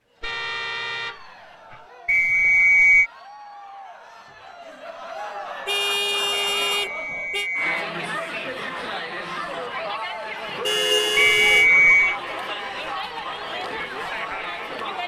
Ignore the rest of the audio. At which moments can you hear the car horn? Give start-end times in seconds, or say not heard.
0.2-1.9, 5.7-7.5, 10.6-11.7.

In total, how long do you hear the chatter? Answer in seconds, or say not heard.
15 s.